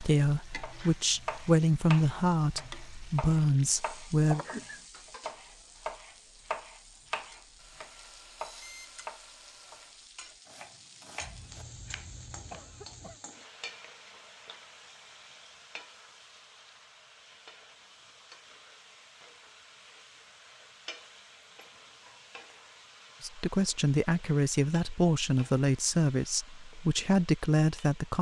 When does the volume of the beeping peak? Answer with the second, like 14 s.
9 s.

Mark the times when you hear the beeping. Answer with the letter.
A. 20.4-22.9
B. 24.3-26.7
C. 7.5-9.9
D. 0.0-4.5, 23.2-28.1
C.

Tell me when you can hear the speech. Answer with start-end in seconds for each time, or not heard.
0.0-4.5, 23.2-28.1.